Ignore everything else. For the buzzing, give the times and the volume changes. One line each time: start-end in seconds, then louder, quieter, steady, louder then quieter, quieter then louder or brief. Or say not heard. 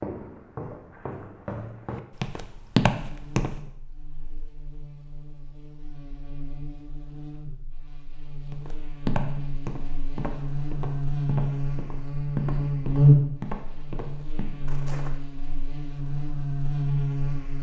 3.0-17.5 louder then quieter.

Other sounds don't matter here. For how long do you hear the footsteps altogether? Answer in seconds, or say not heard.
10 s.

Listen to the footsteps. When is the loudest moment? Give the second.
3 s.